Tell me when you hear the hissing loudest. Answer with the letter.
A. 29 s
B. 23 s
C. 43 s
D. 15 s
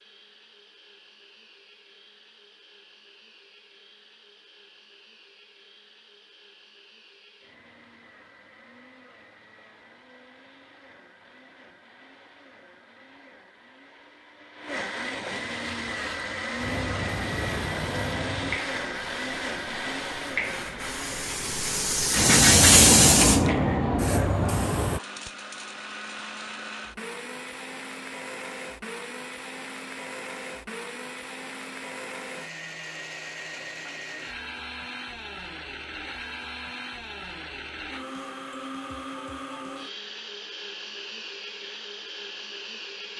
B.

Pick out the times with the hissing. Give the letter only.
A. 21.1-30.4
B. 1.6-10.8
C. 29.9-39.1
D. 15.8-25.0
D.